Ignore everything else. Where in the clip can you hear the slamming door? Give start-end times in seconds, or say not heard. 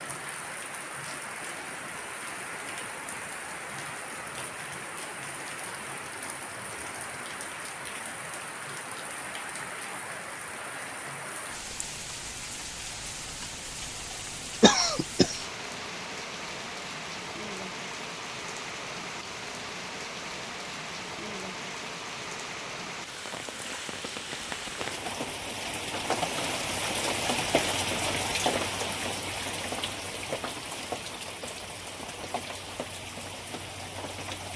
not heard.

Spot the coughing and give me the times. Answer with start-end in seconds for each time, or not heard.
14.6-15.4.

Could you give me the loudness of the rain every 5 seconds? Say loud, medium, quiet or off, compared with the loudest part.
medium, medium, medium, medium, medium, loud, medium.